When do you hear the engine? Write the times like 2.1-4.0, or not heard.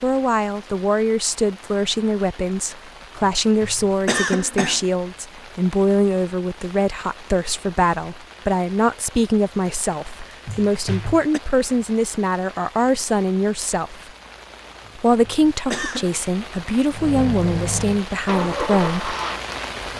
16.9-19.9.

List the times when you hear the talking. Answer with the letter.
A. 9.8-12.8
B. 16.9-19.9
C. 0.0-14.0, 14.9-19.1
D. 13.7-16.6
C.